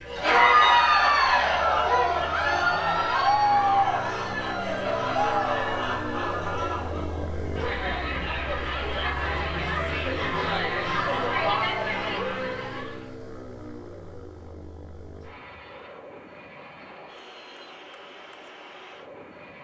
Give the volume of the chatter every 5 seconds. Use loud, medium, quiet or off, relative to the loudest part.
loud, medium, medium, off.